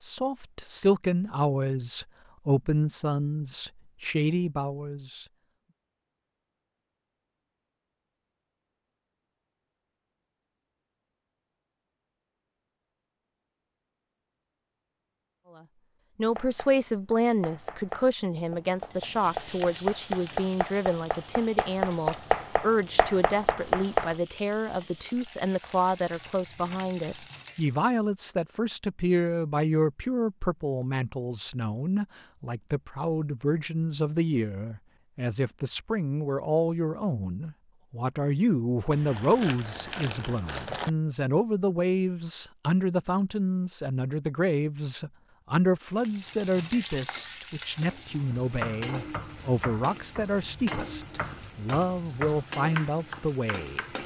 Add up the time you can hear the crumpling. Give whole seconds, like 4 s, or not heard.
2 s.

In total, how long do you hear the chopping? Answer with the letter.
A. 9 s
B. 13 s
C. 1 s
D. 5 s
B.